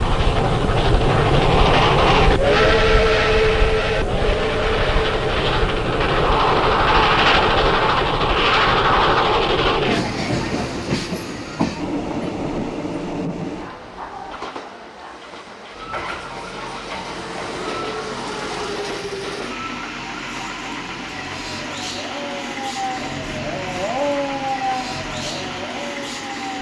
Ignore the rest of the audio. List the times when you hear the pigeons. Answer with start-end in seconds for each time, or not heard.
not heard.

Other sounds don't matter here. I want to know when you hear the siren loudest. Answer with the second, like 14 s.
24 s.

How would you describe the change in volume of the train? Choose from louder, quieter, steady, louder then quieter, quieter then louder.
quieter.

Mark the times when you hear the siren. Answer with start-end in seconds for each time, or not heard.
15.7-26.5.